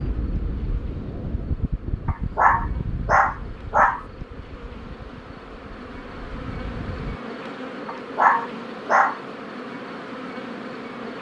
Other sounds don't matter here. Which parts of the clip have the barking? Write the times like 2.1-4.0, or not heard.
2.0-4.0, 7.8-9.2.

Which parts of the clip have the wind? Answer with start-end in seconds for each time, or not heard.
0.0-7.2.